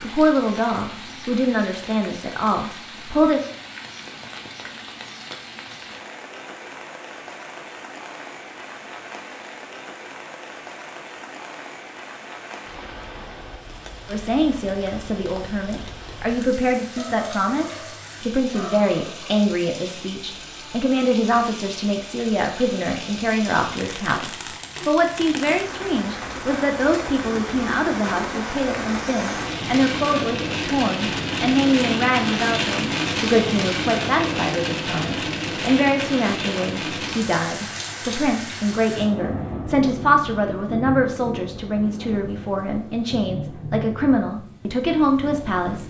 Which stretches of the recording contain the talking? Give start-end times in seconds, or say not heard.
0.0-3.4, 14.1-45.8.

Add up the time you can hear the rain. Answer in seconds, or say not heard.
46 s.